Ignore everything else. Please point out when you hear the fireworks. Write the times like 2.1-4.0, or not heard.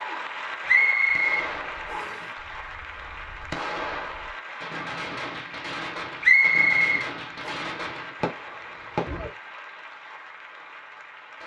1.1-9.3.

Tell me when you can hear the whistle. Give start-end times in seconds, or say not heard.
0.7-2.2, 6.2-7.5.